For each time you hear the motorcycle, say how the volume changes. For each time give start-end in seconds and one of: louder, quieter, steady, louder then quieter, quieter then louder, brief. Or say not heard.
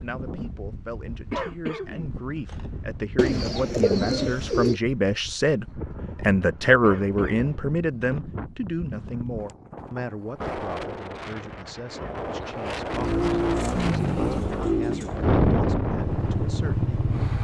12.8-17.3 quieter then louder.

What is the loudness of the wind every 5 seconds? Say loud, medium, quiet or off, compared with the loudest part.
quiet, quiet, medium, loud.